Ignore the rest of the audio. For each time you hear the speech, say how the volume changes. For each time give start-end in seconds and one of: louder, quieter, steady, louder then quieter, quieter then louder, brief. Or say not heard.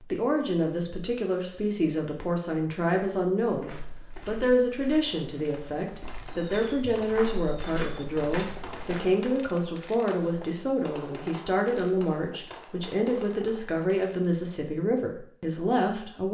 0.0-16.2 steady.